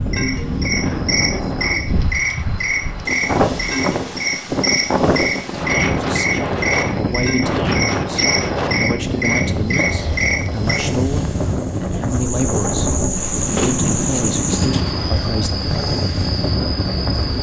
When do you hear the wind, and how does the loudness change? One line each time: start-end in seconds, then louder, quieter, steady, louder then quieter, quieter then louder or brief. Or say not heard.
0.0-17.3 steady.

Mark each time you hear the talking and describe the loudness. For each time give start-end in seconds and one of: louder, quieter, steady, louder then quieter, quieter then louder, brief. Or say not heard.
6.0-15.7 steady.